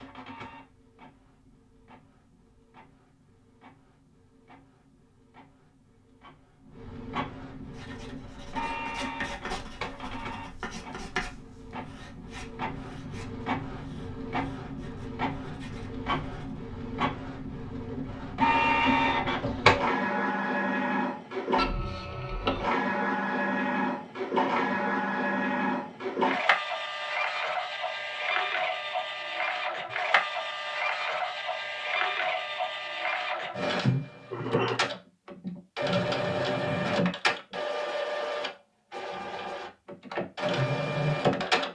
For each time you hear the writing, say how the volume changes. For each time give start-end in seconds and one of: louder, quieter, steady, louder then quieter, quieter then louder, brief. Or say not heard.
7.7-16.6 quieter.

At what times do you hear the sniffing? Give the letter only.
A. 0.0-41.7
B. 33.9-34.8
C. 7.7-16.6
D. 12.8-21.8
B.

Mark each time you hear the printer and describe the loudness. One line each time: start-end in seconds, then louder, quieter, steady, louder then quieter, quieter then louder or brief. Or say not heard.
0.0-41.7 louder.